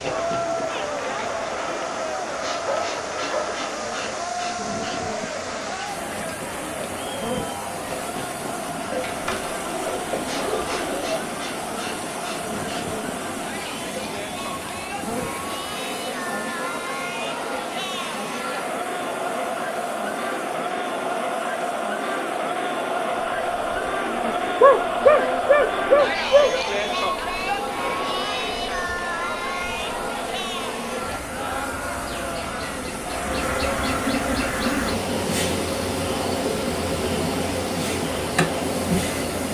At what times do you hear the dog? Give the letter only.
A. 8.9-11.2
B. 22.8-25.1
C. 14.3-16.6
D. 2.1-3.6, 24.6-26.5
D.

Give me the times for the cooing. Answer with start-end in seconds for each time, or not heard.
8.9-11.2.